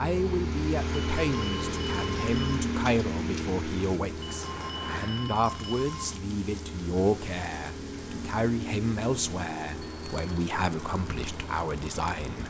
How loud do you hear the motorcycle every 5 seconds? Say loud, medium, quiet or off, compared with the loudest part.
loud, medium, medium.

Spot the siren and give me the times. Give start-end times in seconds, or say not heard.
not heard.